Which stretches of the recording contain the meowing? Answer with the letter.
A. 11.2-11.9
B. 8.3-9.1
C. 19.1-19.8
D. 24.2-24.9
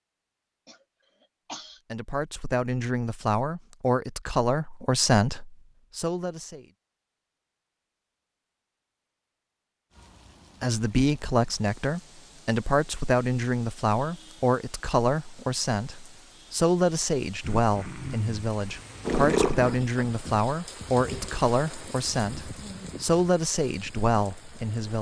C.